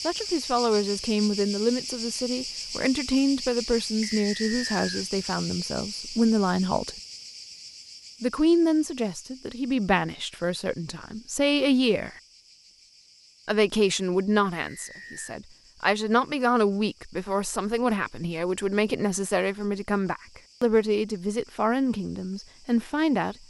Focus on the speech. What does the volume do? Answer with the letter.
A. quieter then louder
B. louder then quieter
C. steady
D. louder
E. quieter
C.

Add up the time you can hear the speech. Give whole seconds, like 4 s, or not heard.
21 s.